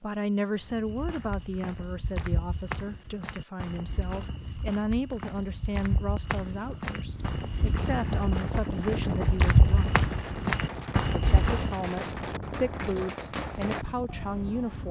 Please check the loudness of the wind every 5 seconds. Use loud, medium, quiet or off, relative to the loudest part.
off, loud, medium.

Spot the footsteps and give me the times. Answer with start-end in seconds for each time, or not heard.
0.6-11.9.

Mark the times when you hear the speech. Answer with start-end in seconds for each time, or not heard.
0.0-9.9, 11.1-14.8.